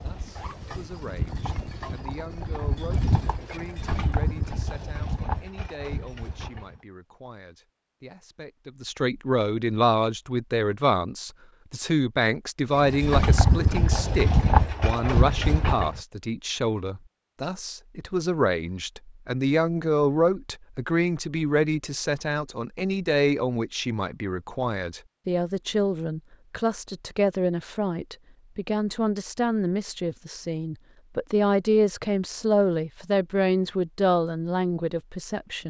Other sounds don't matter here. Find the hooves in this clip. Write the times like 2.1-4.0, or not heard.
0.0-6.8, 12.8-16.0.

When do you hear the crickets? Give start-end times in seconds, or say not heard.
not heard.